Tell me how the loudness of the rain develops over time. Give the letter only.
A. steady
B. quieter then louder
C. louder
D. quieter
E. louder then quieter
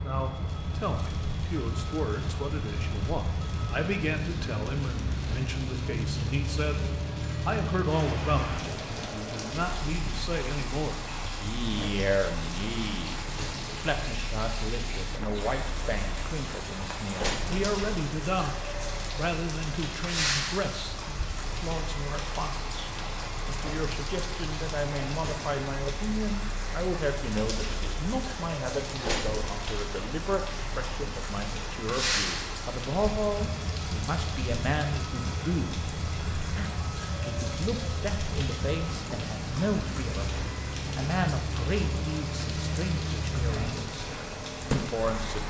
A.